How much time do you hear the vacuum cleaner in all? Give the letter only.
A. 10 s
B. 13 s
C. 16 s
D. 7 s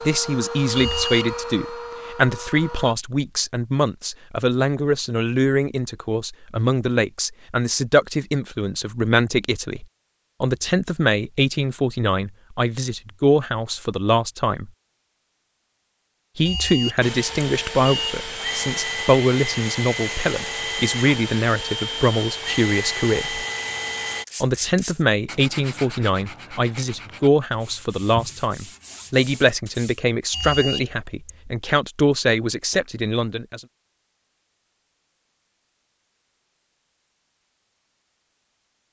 A.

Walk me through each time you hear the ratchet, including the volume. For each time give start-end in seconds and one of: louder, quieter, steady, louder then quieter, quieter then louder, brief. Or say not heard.
not heard.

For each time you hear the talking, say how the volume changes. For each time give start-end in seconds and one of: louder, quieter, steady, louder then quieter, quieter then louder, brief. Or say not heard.
0.1-14.7 steady
16.4-23.4 steady
24.4-33.6 steady.